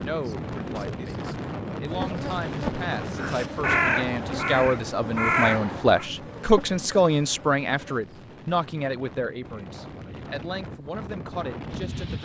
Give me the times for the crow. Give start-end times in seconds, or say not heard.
3.1-6.0.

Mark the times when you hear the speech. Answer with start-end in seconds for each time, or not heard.
0.0-12.2.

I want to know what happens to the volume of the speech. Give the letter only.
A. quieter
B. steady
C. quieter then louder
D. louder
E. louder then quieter
E.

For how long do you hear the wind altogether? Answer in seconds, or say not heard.
12 s.